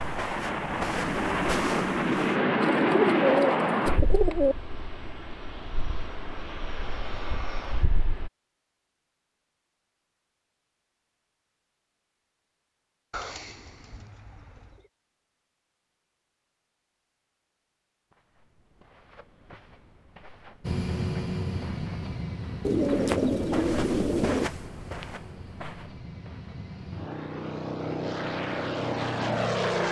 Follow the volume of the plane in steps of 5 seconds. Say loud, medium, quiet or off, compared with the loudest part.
loud, quiet, off, off, medium, medium.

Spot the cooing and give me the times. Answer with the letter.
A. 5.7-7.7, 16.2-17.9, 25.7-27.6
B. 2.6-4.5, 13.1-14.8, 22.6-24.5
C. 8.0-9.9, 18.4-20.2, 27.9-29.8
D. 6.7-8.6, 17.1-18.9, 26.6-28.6
B.